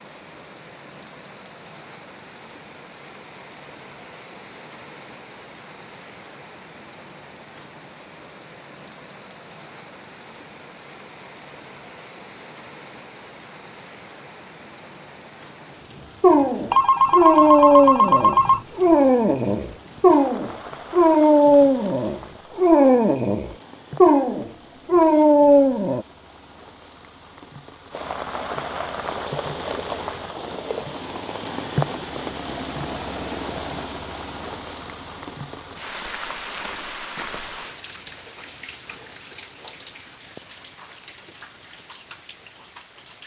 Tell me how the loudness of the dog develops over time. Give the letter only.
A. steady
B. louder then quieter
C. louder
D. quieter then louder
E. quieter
A.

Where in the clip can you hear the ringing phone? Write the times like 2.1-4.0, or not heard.
16.7-18.6.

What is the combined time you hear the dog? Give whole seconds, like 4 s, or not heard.
10 s.